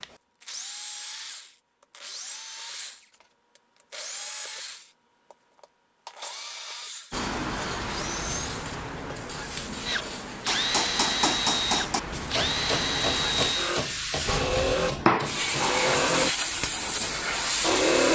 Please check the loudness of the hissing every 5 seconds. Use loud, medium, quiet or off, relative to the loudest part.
off, medium, medium, loud.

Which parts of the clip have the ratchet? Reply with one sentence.
You can't hear the ratchet here.